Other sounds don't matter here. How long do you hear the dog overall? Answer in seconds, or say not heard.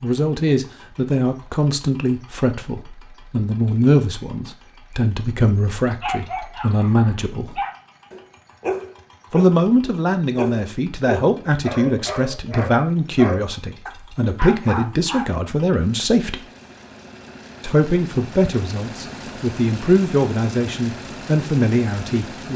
9 s.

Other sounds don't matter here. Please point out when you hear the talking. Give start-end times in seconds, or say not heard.
0.0-7.6, 9.3-16.4, 17.6-22.5.